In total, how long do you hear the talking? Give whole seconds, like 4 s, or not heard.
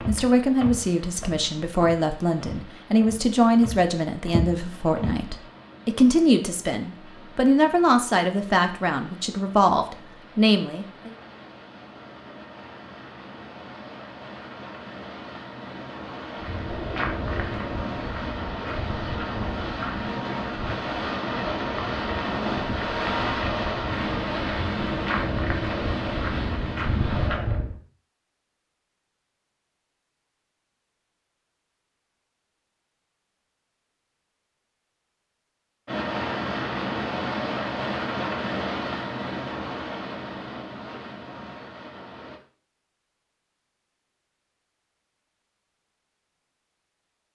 11 s.